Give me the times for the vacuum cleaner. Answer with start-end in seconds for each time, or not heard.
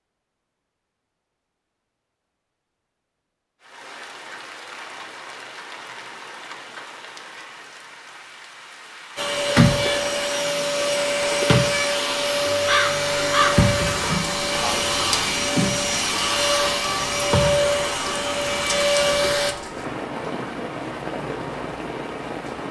9.2-19.6.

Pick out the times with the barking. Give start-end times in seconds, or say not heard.
not heard.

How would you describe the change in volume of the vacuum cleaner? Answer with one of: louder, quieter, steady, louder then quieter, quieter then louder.
steady.